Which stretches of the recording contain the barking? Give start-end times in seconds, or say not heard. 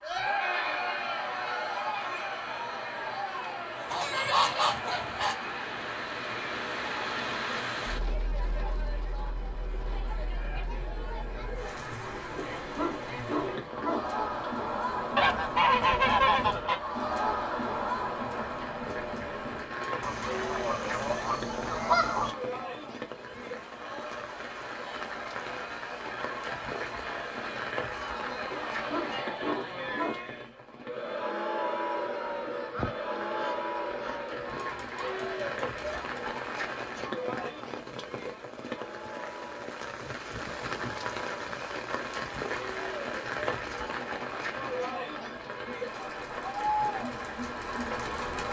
12.3-14.2, 28.5-30.3.